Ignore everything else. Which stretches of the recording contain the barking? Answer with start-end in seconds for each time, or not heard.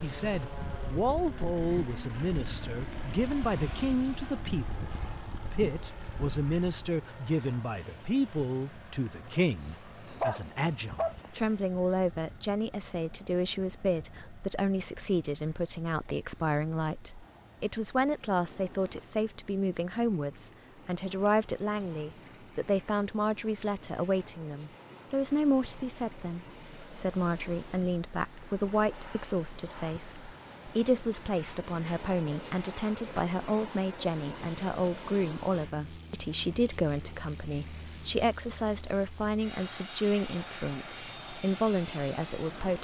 9.3-11.3.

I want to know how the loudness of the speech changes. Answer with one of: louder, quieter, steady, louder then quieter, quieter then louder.
steady.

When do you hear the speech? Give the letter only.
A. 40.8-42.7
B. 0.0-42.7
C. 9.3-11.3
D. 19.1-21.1
B.